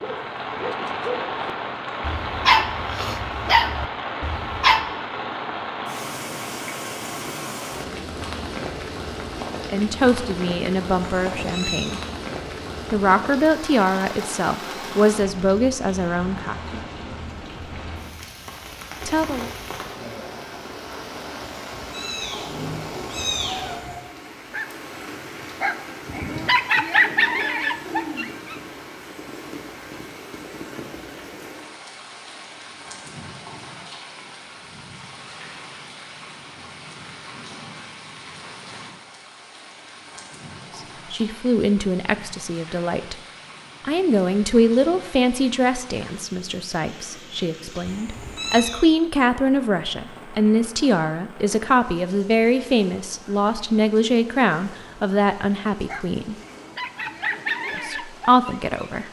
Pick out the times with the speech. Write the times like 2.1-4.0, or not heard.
9.7-12.0, 12.9-16.8, 19.1-19.5, 40.8-43.1, 43.8-56.4, 57.8-59.0.